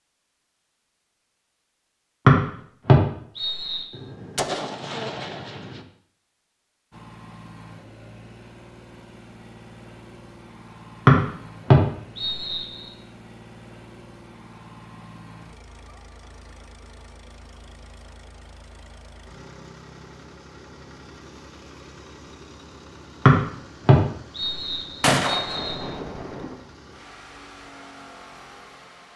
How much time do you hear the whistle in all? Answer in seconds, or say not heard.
6 s.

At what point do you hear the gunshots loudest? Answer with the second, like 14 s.
25 s.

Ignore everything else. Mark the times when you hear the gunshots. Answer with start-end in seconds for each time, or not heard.
3.9-5.8, 25.0-26.6.